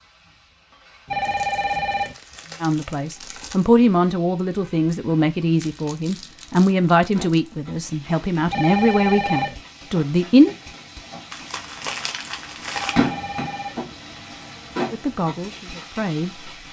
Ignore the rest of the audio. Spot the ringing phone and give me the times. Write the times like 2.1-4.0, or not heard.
1.1-2.1, 8.5-9.6, 12.7-13.8.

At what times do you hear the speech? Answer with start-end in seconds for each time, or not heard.
2.6-10.6, 14.9-16.6.